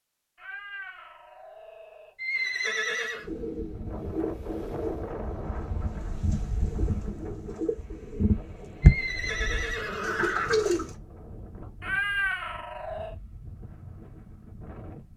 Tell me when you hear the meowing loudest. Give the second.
12 s.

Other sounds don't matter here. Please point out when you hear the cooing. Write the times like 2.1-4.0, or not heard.
3.2-10.9.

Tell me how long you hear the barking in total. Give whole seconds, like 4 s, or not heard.
not heard.